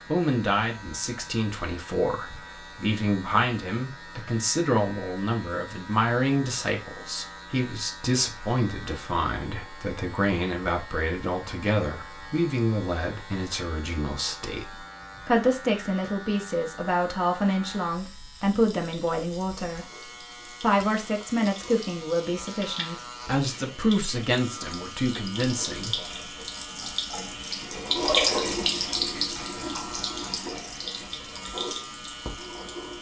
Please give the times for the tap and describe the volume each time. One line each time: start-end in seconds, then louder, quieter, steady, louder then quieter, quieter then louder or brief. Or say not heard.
18.7-32.9 louder then quieter.